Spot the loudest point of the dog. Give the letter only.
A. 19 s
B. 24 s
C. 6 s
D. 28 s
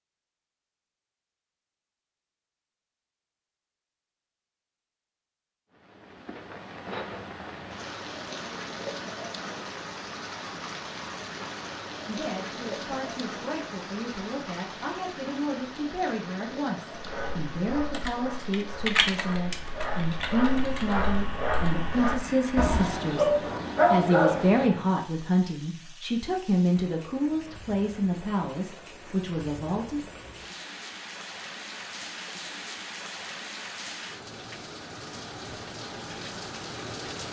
B.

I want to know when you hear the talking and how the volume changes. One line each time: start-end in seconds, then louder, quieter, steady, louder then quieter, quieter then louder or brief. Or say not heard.
12.1-30.1 louder.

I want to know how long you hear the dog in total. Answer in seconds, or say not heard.
8 s.